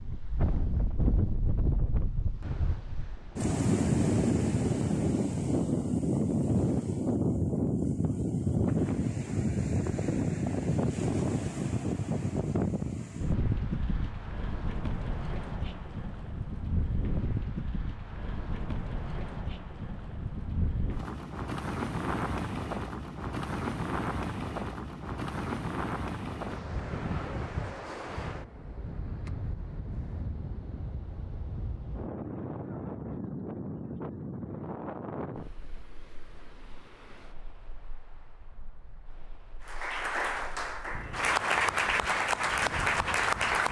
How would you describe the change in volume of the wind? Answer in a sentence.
The volume of the wind goes down.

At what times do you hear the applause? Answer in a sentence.
The applause can be heard from 39.6 to 43.6 s.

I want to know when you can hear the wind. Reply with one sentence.
You can hear the wind from 0.0 to 43.6 s.